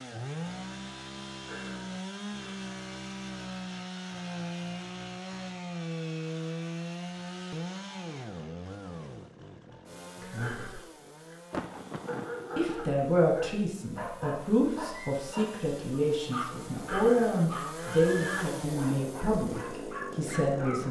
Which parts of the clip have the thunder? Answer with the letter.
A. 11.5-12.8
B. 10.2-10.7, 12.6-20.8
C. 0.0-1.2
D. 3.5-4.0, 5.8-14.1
A.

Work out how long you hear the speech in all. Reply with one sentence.
You can hear the speech for 9 seconds altogether.